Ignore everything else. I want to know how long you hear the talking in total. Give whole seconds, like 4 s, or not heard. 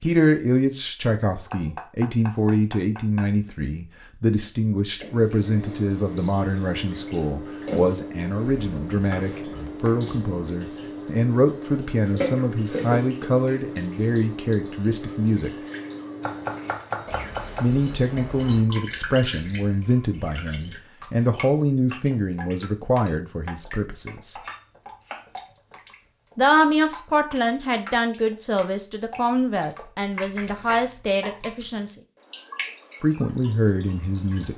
29 s.